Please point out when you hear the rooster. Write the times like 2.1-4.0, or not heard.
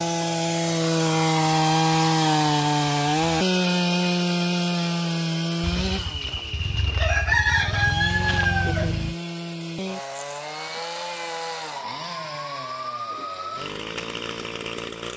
5.6-9.2.